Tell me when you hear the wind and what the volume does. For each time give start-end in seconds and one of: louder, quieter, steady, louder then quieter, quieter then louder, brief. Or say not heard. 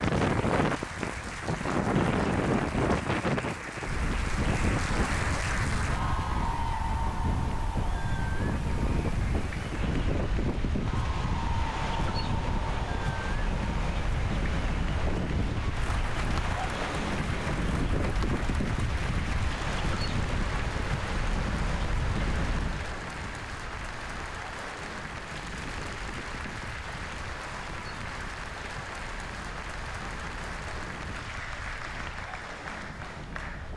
0.0-33.7 quieter.